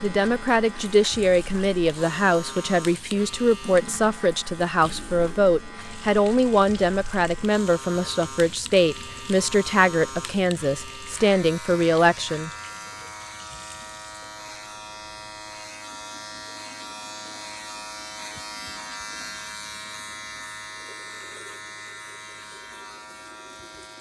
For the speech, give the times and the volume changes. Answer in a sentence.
You can hear the speech from 0.0 to 12.5 s, at a steady volume.